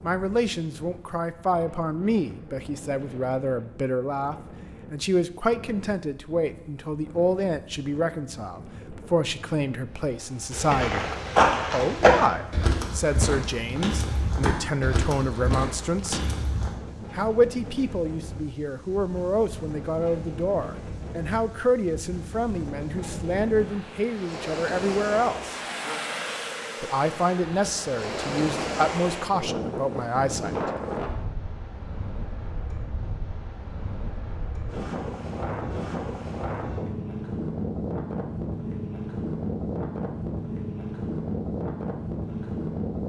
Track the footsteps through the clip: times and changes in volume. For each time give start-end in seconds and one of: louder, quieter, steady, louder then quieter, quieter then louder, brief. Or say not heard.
10.5-16.7 quieter.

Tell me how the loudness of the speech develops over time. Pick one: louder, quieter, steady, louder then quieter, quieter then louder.
steady.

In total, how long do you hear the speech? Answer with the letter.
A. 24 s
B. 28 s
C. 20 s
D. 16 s
B.